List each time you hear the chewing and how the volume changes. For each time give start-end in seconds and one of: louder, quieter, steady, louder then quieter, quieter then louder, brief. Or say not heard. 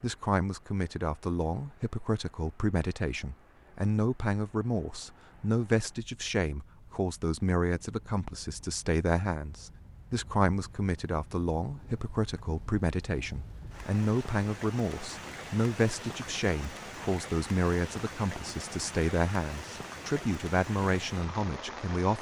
not heard.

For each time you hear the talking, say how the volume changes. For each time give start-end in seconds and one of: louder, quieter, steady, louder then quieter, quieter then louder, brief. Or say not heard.
0.0-22.1 steady.